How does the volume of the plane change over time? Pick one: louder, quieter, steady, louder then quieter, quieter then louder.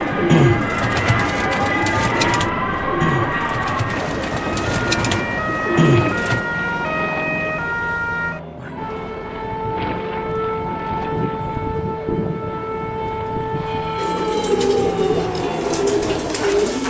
quieter.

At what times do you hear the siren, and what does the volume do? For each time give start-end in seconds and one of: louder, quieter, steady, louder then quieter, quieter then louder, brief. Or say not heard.
0.0-16.8 steady.